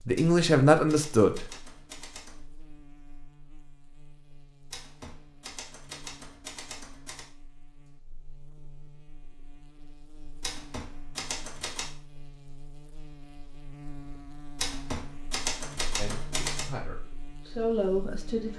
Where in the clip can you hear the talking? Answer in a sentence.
You can hear the talking from 0.0 to 1.5 s and from 15.9 to 18.5 s.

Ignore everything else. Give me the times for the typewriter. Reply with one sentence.
The typewriter can be heard from 0.1 to 2.5 s, from 4.7 to 7.3 s, from 10.4 to 11.9 s and from 14.6 to 16.6 s.